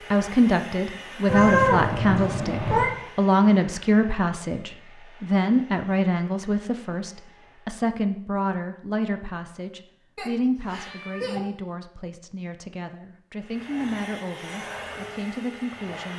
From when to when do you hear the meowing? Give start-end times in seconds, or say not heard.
1.2-2.9, 10.2-11.4.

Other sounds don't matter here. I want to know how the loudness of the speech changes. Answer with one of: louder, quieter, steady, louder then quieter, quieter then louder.
quieter.